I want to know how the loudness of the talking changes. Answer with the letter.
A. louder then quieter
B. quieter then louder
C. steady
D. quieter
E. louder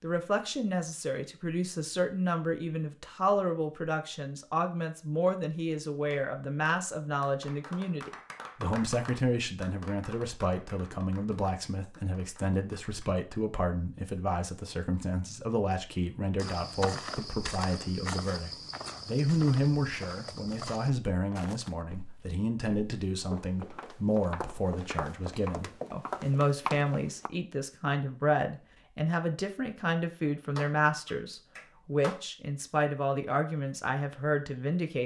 C.